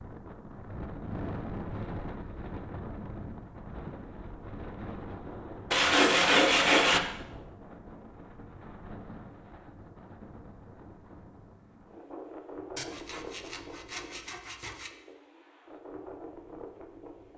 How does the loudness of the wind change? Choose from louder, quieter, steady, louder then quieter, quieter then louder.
quieter.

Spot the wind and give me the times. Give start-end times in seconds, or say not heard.
0.0-17.3.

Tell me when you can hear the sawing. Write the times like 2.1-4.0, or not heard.
5.7-7.0, 12.8-14.9.